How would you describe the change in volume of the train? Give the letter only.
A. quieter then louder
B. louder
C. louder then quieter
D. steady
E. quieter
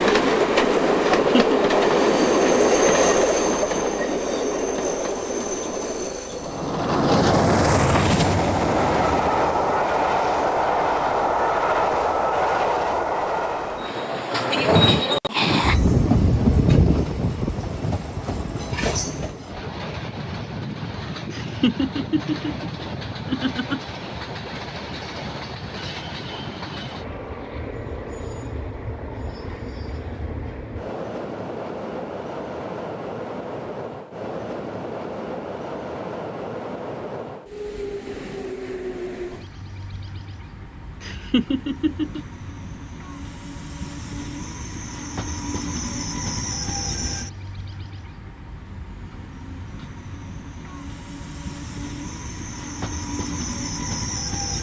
E.